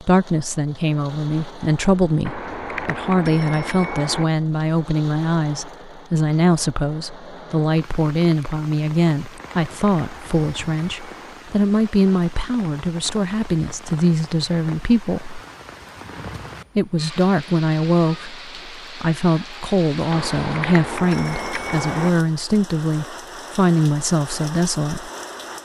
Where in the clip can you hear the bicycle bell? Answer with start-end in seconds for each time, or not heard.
2.2-4.2, 9.3-11.3, 20.1-22.1.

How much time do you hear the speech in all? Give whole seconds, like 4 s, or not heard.
24 s.